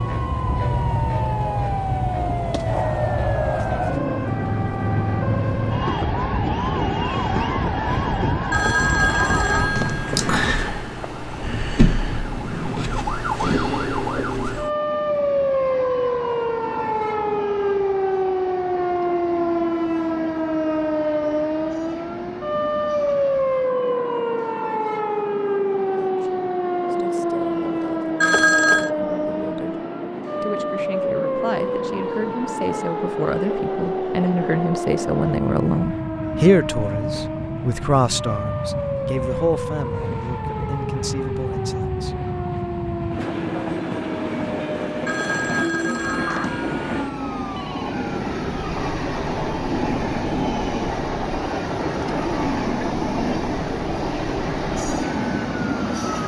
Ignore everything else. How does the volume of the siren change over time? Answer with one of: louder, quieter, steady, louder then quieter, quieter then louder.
quieter.